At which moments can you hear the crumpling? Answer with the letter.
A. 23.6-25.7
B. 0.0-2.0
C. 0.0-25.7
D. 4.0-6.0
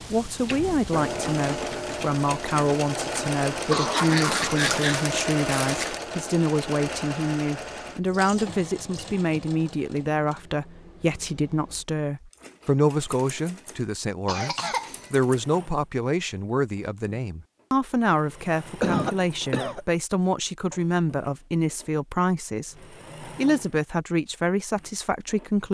D.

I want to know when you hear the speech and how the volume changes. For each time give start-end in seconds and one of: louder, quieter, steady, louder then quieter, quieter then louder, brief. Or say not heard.
0.0-25.7 steady.